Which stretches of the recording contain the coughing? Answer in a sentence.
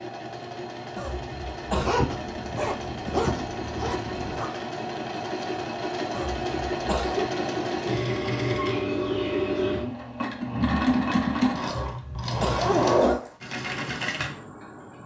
The coughing can be heard from 0.9 to 2.0 s, from 6.1 to 7.3 s and from 11.7 to 13.2 s.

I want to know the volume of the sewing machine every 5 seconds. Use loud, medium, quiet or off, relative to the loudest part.
medium, loud, loud.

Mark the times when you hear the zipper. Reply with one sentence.
The zipper can be heard from 1.7 to 4.5 s and from 12.6 to 13.3 s.